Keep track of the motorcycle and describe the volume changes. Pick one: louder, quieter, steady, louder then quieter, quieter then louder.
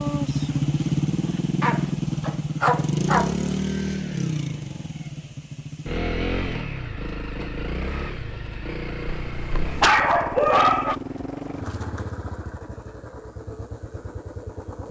quieter.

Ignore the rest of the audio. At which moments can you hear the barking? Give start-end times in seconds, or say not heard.
1.6-3.3, 9.1-10.9.